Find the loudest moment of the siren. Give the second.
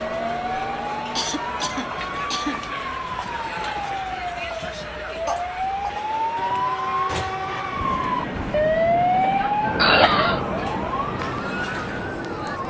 9 s.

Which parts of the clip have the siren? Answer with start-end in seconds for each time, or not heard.
0.0-12.6.